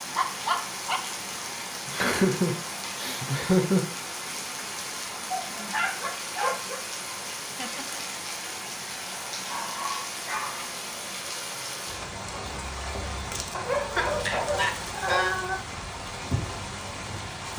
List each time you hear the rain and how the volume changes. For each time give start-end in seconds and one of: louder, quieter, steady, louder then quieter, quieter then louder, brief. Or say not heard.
0.0-17.5 steady.